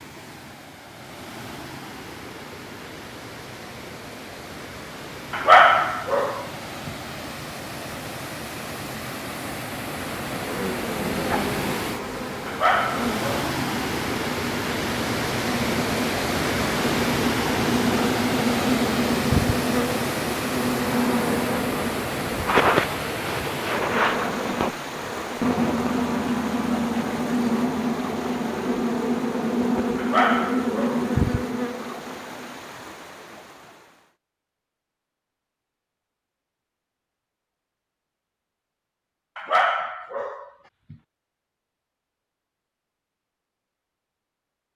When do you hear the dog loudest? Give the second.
6 s.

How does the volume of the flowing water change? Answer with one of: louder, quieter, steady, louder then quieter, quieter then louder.
louder then quieter.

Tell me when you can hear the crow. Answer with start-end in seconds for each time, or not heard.
not heard.